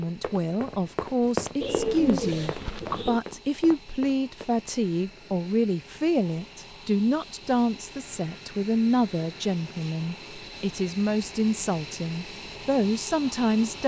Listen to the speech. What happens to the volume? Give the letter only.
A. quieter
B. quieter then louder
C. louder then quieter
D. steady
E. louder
D.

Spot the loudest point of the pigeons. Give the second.
2 s.